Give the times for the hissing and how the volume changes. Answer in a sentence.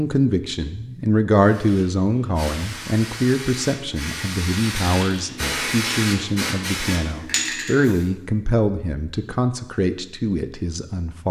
You can hear the hissing from 1.4 to 8.1 s, getting louder.